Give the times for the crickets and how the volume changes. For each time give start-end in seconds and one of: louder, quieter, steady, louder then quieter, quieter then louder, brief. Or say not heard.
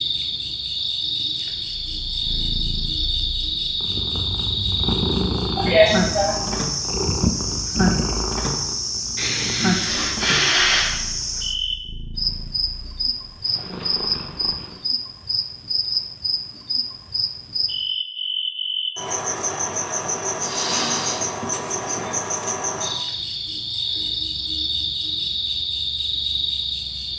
0.0-27.1 steady.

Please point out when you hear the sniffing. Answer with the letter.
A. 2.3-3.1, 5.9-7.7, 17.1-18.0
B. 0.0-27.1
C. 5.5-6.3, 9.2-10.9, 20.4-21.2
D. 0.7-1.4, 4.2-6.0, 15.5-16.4
C.